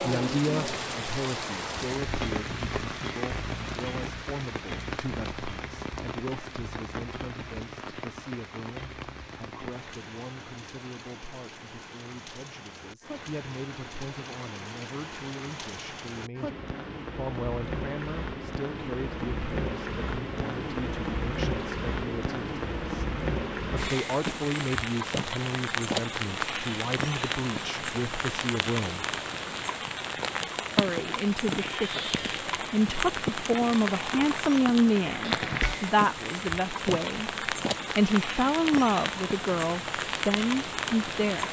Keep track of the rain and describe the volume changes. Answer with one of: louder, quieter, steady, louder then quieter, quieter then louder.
quieter then louder.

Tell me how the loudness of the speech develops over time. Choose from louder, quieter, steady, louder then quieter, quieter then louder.
quieter then louder.